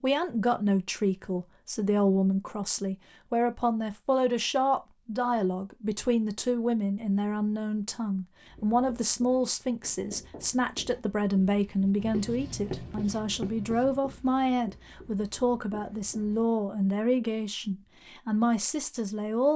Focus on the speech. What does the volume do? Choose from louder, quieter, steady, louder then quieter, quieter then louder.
steady.